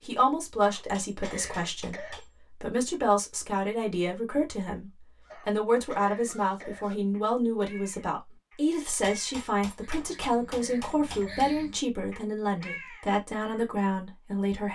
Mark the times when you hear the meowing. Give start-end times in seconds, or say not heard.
not heard.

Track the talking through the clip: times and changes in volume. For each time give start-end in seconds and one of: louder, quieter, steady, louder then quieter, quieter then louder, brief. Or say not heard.
0.0-14.6 steady.